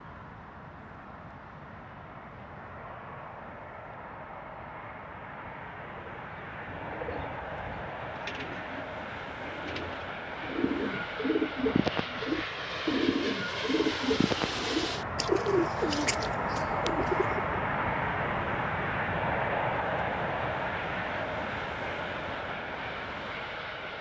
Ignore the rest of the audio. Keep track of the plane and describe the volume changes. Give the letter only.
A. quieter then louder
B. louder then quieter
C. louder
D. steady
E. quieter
C.